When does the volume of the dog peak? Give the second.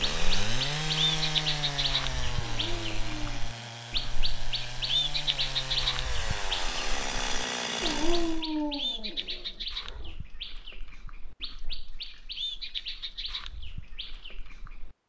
8 s.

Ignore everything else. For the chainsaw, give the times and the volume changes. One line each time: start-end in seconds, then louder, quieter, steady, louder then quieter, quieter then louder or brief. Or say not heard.
0.0-8.4 quieter then louder.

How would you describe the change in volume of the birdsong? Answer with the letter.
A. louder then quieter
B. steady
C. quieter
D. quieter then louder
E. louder
C.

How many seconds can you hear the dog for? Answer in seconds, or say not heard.
3 s.